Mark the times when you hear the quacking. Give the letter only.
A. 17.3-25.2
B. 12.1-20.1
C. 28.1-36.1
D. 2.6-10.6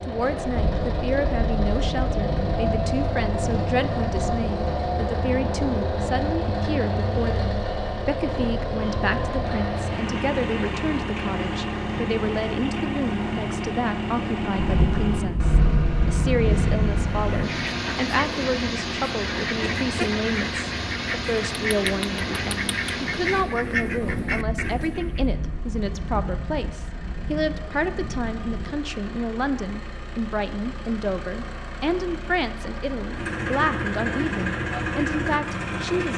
A.